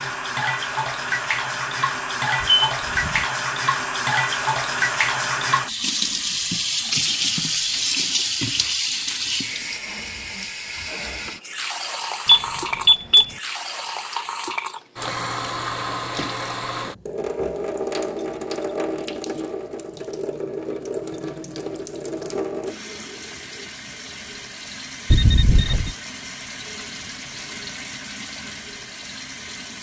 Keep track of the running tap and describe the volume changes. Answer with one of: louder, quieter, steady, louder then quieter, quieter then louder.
quieter.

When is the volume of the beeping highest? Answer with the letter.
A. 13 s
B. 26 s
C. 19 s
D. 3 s
A.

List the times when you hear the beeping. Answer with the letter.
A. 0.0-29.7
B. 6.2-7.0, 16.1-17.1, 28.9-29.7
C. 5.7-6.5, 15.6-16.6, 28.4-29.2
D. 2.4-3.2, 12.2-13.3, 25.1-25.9
D.